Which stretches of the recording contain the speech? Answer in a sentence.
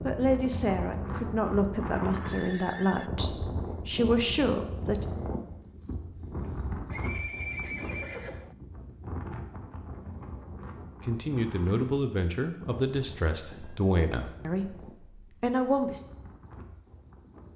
The speech can be heard from 0.1 to 5.0 s and from 11.1 to 16.0 s.